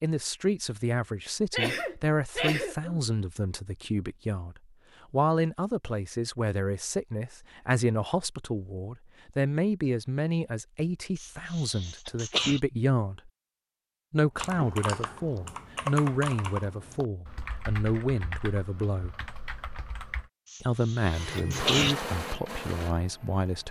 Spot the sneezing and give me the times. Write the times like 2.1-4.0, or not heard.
1.5-3.0, 11.2-12.6, 20.5-21.9.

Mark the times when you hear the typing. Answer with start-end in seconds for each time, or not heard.
14.3-20.3.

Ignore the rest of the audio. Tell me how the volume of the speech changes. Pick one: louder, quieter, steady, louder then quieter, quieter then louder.
steady.